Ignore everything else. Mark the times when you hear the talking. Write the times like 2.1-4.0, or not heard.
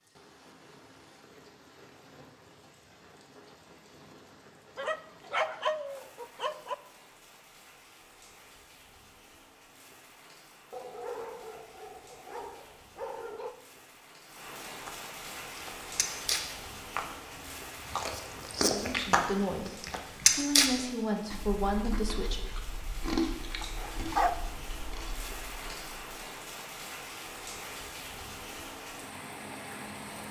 18.6-22.4.